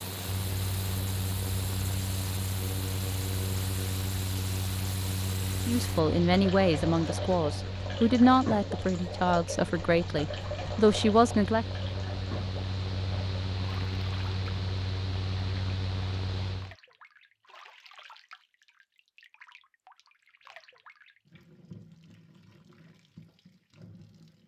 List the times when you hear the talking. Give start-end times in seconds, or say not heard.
5.7-11.7.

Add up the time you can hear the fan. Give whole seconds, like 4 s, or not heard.
17 s.